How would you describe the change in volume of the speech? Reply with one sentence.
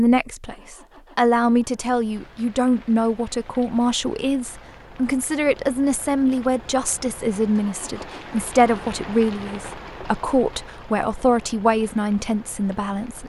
The volume of the speech stays about the same.